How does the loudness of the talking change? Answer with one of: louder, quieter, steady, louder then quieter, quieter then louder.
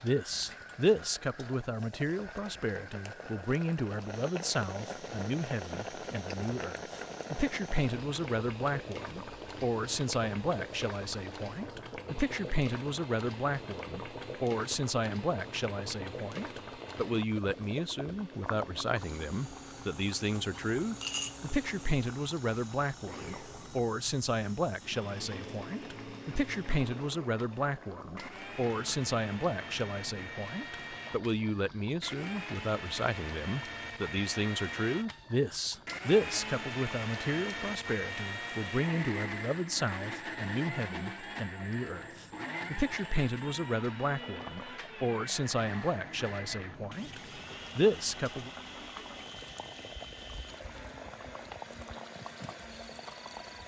steady.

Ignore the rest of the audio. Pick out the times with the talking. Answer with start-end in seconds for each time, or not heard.
0.0-48.5.